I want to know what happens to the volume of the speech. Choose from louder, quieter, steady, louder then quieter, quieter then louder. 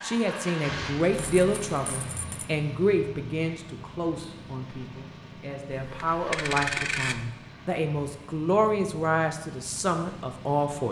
quieter then louder.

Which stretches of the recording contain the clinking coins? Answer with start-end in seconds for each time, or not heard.
1.1-2.5, 5.7-7.2.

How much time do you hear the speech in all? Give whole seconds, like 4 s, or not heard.
11 s.